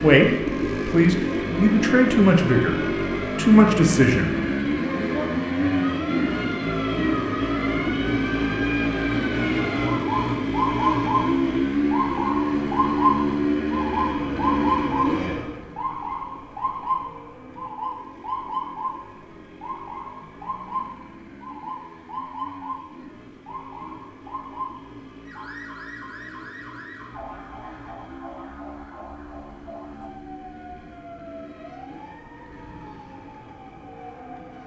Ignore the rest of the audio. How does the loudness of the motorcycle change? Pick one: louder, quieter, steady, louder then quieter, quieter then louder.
quieter.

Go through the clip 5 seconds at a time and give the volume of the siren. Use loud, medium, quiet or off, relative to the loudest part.
medium, medium, loud, medium, medium, quiet, quiet.